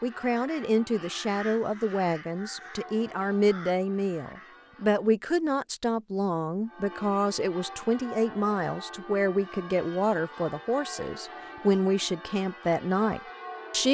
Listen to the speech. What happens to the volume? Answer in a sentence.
The loudness of the speech stays about the same.